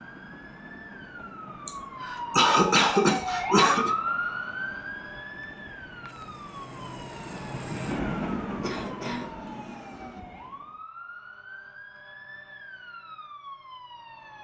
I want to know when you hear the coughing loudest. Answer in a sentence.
The volume of the coughing peaks at 3 seconds.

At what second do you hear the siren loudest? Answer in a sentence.
The loudest moment of the siren is at 4 seconds.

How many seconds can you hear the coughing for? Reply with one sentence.
You can hear the coughing for 4 seconds altogether.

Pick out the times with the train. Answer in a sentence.
You can hear the train from 0.0 to 10.8 s.